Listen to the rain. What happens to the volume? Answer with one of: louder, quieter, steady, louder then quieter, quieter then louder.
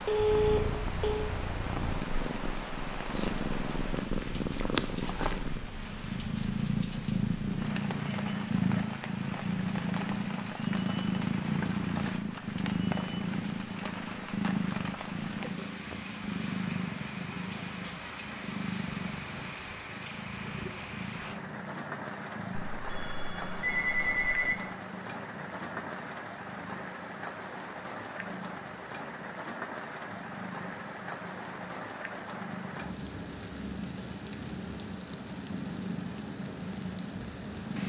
steady.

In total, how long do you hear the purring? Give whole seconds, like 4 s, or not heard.
38 s.